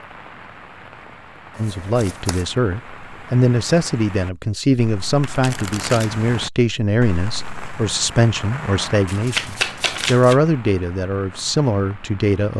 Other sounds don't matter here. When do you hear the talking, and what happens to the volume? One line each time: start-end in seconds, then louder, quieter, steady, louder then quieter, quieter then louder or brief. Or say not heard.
1.6-12.5 steady.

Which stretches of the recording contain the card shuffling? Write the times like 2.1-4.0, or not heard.
1.5-2.5, 5.2-6.1, 9.1-10.3.